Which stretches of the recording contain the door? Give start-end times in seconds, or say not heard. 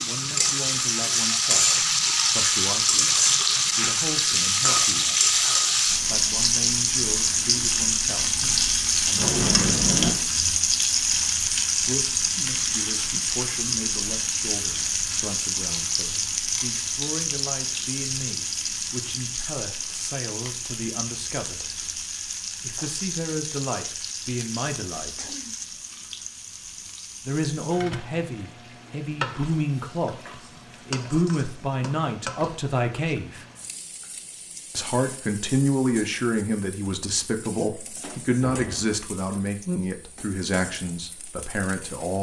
8.4-10.2, 37.6-39.5.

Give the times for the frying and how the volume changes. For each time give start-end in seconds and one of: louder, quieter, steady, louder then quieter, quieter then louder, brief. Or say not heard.
0.0-42.1 quieter.